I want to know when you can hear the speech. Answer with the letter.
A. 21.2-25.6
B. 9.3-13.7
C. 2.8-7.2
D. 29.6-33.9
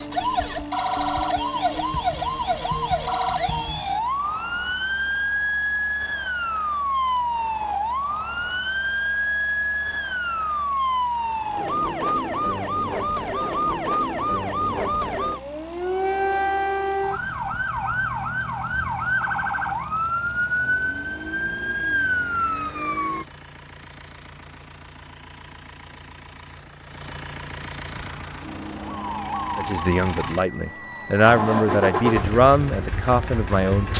D.